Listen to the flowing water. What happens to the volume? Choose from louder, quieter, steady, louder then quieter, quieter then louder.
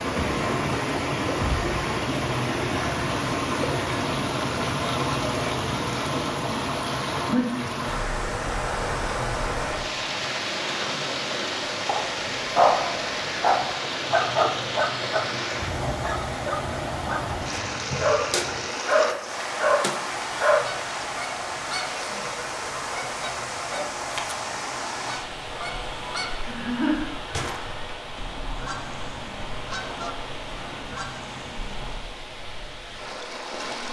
quieter.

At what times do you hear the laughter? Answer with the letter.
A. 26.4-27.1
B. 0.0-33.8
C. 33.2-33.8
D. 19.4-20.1
A.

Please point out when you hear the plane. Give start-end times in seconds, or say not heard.
not heard.